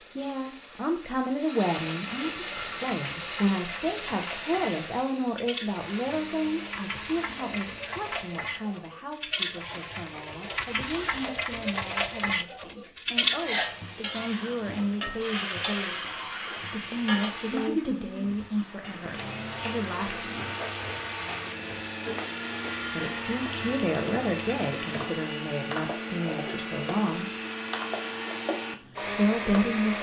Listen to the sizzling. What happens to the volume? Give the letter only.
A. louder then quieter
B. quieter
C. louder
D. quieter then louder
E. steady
A.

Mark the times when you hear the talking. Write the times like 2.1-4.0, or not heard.
0.1-20.4, 22.9-27.3, 28.9-29.9.